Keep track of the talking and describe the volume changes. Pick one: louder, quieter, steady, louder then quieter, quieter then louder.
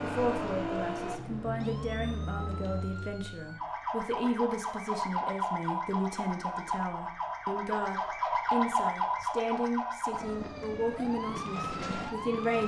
steady.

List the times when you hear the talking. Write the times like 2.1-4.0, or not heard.
0.0-12.6.